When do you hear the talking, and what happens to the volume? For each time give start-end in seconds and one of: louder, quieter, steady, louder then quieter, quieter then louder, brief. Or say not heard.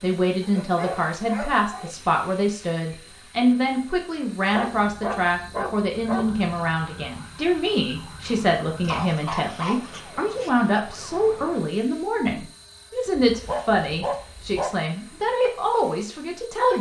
0.0-16.7 steady.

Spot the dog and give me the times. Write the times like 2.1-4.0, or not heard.
0.4-1.9, 4.5-6.5, 8.8-10.5, 13.2-14.7.